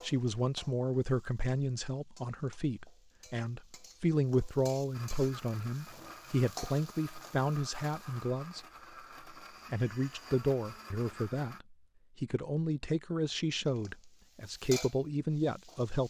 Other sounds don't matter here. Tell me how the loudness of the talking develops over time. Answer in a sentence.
The volume of the talking stays about the same.